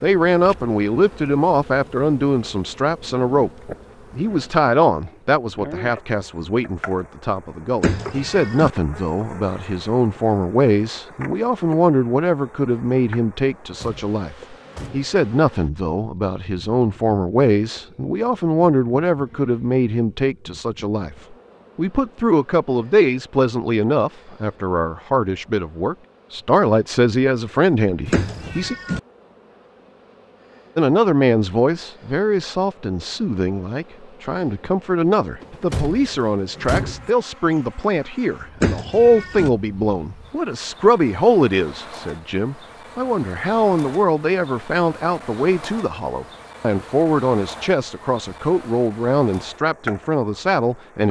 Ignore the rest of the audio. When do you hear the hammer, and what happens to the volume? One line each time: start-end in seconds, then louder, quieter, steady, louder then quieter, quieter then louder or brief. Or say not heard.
not heard.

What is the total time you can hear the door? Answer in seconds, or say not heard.
4 s.